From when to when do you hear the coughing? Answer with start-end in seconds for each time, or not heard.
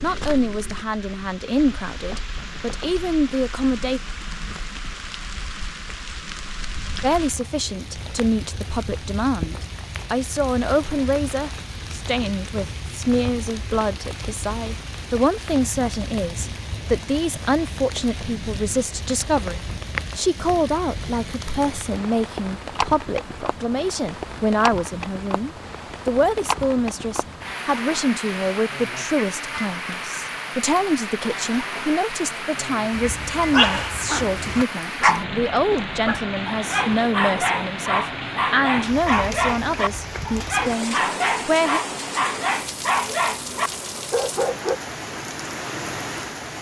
not heard.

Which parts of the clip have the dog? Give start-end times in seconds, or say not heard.
32.9-44.8.